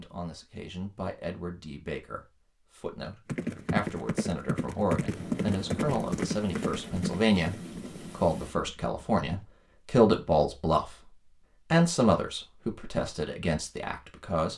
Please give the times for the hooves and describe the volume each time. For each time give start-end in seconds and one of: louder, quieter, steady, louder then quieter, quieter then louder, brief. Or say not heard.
3.2-9.4 quieter.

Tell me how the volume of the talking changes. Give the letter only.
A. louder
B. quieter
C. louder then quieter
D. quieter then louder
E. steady
A.